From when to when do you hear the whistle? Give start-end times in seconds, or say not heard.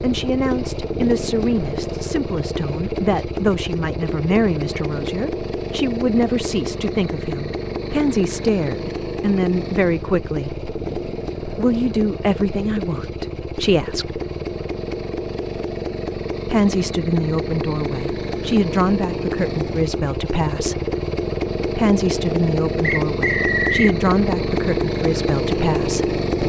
22.8-23.9.